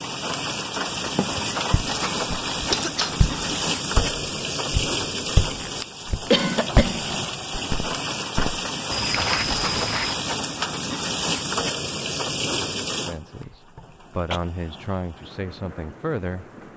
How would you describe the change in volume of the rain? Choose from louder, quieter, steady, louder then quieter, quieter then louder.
quieter.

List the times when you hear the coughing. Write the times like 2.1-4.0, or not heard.
2.7-3.7, 6.3-7.0, 13.4-14.4.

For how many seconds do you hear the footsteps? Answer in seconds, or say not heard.
9 s.